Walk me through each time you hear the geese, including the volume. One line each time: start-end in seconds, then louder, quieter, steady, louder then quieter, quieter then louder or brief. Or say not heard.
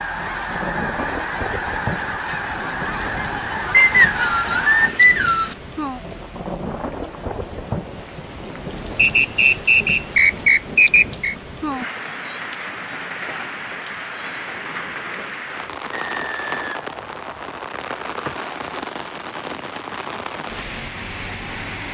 0.0-4.9 steady.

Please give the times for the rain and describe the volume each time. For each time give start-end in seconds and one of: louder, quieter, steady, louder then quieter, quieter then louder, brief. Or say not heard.
0.0-21.8 steady.